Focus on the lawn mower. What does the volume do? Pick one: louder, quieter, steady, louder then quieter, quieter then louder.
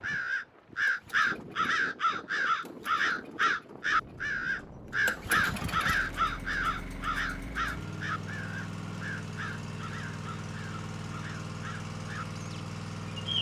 louder.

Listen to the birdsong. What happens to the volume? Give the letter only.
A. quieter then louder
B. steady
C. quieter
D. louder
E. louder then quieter
C.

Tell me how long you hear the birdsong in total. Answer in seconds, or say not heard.
13 s.